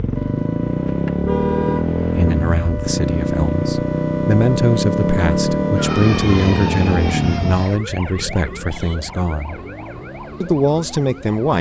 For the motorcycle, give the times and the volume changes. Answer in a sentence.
The motorcycle can be heard from 0.0 to 11.4 s, getting quieter.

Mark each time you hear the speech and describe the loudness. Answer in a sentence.
The speech can be heard from 2.0 to 9.6 s, getting louder then quieter; and briefly from 10.4 to 11.5 s.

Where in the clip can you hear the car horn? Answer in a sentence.
The car horn can be heard from 0.8 to 2.4 s.